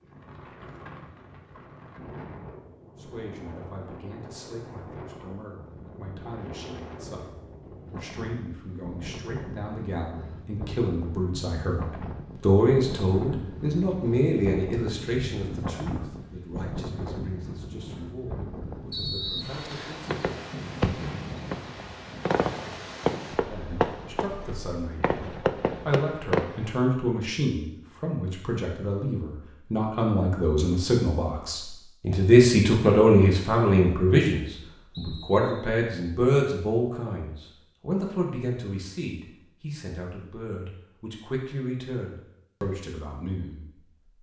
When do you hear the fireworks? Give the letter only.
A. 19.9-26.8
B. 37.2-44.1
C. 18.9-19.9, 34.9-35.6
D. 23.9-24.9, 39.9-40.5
A.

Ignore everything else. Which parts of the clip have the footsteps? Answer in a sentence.
You can't hear the footsteps here.